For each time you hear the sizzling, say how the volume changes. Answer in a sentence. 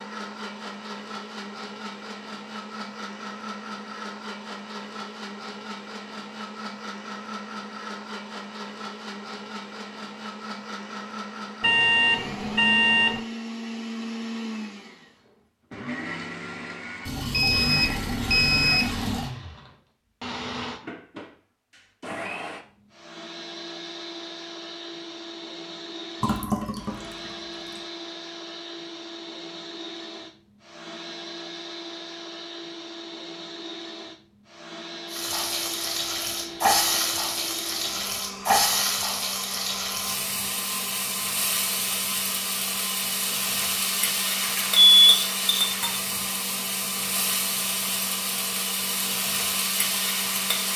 The sizzling can be heard from 35.1 to 50.7 s, at a steady volume.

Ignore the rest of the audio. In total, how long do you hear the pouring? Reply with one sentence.
You can hear the pouring for 4 seconds altogether.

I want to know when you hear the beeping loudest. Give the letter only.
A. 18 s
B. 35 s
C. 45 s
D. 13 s
C.